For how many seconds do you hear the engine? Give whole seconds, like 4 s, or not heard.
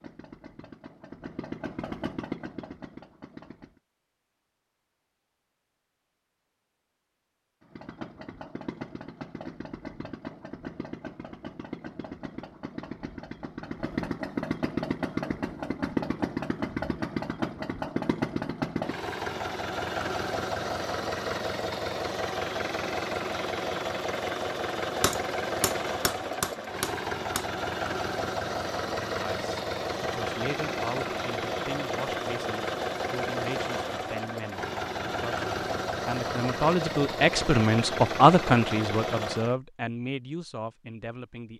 36 s.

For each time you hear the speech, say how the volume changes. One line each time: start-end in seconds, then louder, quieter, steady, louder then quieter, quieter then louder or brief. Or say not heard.
29.1-41.5 louder then quieter.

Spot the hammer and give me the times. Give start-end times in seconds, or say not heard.
25.0-27.4.